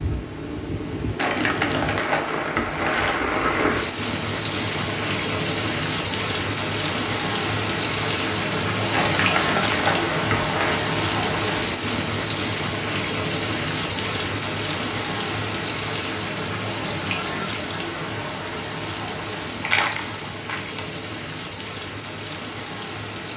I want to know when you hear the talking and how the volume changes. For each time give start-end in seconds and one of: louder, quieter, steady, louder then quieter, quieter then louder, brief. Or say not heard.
not heard.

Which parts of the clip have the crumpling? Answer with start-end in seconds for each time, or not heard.
1.1-3.1, 8.9-10.8, 19.6-20.8.